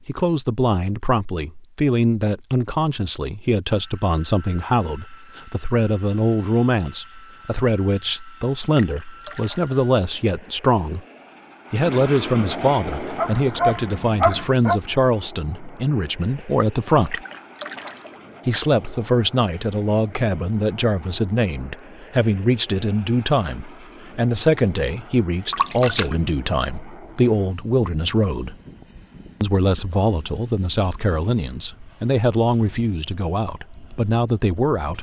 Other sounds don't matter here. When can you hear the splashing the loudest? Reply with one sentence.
The loudest moment of the splashing is at 26 seconds.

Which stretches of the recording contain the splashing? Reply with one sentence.
The splashing can be heard from 8.8 to 9.8 s, from 17.1 to 18.2 s and from 25.5 to 26.1 s.